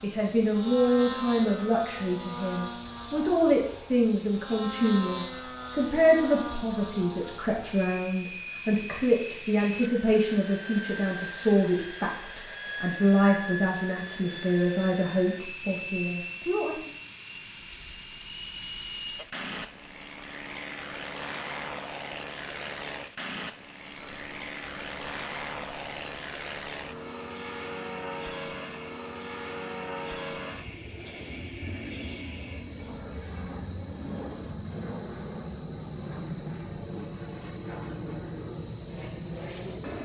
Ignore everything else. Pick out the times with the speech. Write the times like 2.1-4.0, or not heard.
0.0-16.9.